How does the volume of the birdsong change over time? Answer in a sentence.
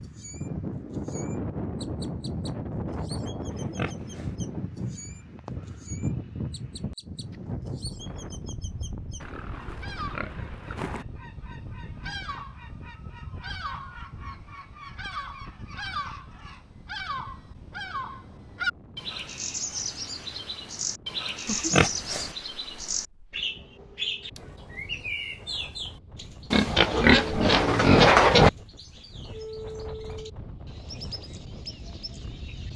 The volume of the birdsong goes up, then down.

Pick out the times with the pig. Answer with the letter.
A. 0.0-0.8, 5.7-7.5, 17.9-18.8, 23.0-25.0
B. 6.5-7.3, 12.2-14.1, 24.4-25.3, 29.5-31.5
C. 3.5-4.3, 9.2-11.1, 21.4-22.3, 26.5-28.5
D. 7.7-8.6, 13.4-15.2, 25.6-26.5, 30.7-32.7
C.